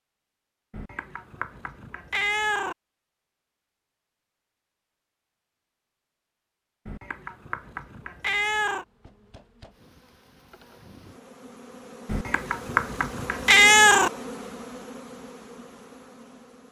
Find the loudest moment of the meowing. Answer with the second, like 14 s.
14 s.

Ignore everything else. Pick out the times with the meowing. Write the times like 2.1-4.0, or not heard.
0.7-2.8, 6.8-8.8, 12.1-14.1.